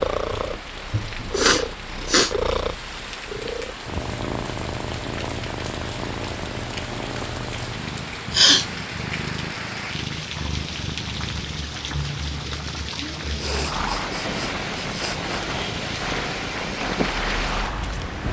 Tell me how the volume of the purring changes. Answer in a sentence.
The volume of the purring goes down.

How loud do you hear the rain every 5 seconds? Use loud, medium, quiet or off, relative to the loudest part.
medium, medium, loud, loud.